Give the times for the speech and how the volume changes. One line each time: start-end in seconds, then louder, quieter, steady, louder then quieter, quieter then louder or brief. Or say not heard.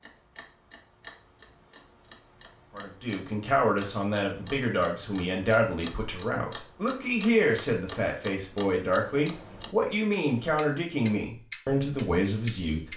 2.8-12.9 steady.